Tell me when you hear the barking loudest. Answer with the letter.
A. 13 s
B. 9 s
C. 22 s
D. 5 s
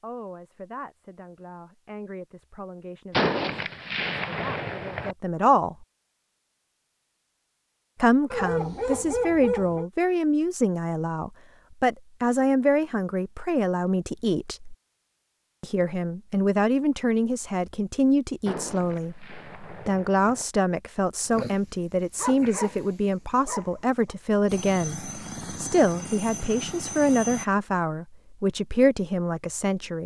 B.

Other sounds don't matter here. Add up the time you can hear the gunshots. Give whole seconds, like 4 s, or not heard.
4 s.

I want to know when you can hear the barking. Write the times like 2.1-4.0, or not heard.
8.3-9.9, 21.3-24.1.